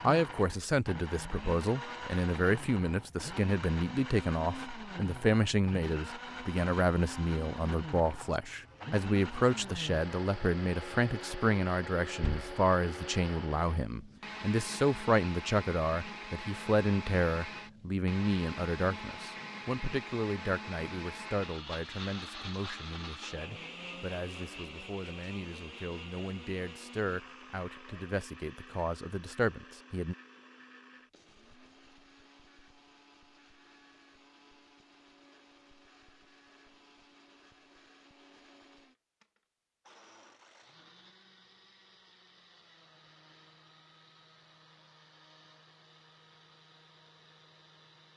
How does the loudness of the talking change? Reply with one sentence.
The volume of the talking goes down.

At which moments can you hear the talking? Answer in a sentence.
The talking can be heard from 0.0 to 30.1 s.